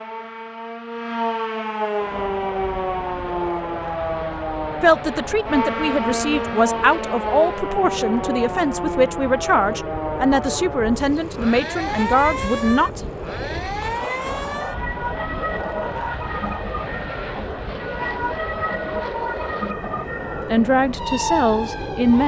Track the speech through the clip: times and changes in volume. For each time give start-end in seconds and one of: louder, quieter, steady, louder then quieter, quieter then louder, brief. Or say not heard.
4.8-13.0 steady
20.4-22.2 brief.